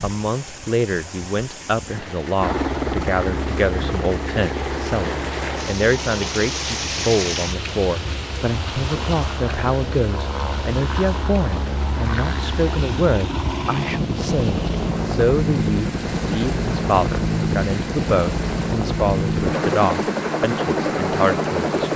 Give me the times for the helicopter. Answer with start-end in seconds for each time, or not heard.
2.4-21.9.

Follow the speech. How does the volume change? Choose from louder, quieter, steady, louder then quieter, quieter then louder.
steady.